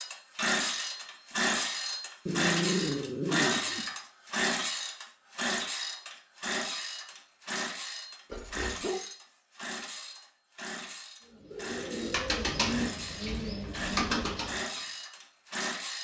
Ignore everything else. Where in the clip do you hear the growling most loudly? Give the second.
3 s.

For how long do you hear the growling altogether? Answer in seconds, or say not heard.
2 s.